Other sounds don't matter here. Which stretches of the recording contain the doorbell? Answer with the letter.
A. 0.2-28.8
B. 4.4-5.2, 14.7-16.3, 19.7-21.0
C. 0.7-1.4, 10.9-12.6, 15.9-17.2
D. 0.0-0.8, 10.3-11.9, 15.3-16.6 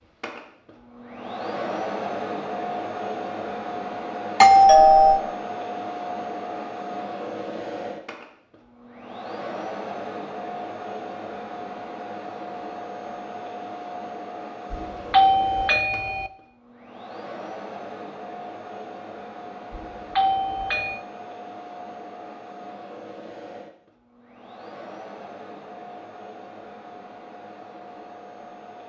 B.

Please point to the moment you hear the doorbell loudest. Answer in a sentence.
The loudest moment of the doorbell is at 5 seconds.